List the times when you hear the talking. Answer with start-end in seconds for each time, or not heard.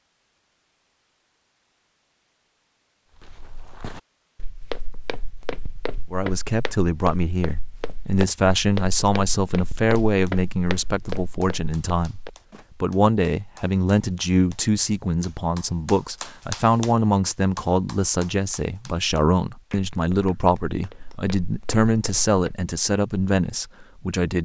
6.1-24.3.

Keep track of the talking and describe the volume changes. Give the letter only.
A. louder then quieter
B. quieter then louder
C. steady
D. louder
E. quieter
C.